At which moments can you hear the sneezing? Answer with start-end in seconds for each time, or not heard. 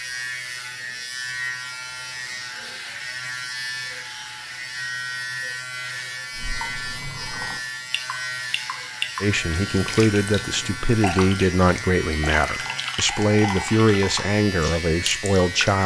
not heard.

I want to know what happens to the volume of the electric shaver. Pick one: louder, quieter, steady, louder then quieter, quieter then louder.
steady.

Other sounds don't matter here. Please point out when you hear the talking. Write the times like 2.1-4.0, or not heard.
9.2-15.8.